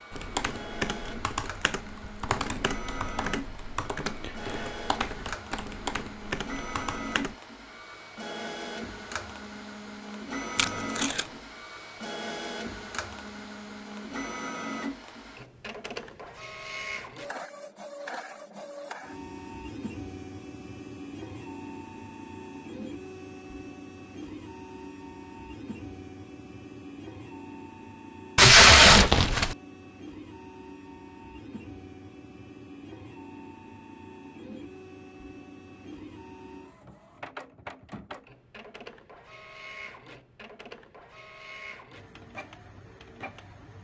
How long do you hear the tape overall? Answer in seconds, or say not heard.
2 s.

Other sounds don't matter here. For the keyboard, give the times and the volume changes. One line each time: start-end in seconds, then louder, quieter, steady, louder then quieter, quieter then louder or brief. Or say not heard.
0.1-7.3 steady.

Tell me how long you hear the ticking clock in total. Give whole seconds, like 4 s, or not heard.
not heard.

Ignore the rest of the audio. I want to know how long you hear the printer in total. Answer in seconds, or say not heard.
44 s.